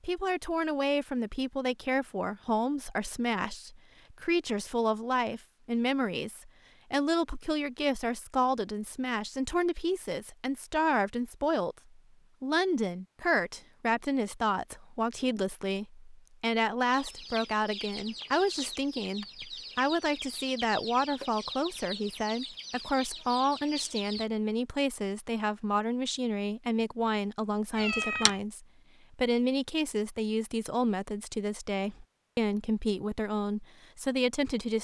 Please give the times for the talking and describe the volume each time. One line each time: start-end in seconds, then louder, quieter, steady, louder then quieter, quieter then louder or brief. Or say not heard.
0.0-34.8 steady.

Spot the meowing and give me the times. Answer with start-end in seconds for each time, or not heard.
27.7-28.4.